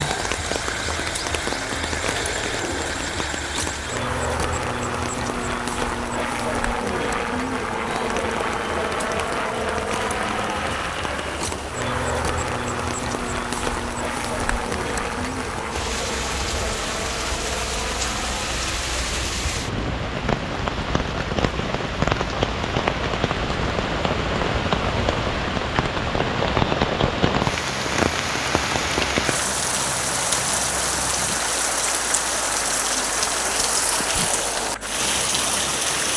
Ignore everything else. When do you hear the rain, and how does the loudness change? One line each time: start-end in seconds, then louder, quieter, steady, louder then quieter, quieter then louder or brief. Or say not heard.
0.0-36.1 louder.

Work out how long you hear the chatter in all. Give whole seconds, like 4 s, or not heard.
not heard.